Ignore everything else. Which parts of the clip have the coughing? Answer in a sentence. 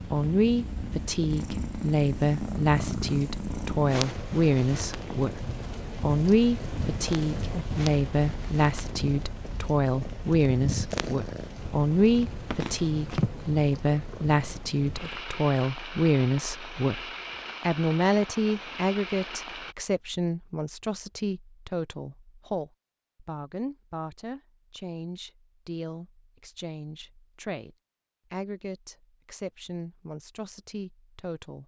The coughing can't be heard in this clip.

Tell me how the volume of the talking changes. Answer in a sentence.
The volume of the talking goes down.